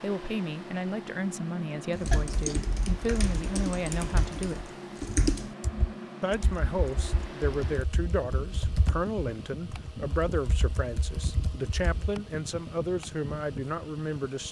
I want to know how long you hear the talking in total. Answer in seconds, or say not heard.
13 s.